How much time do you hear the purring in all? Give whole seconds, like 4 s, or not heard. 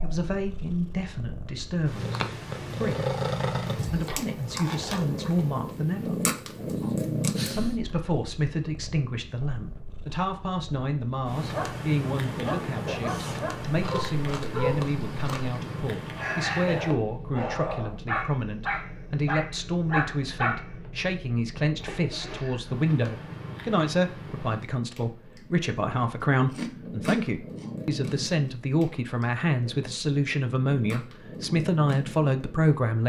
33 s.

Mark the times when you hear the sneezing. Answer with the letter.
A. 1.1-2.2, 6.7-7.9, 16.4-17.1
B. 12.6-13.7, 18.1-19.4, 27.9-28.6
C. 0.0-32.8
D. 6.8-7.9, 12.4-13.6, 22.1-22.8
D.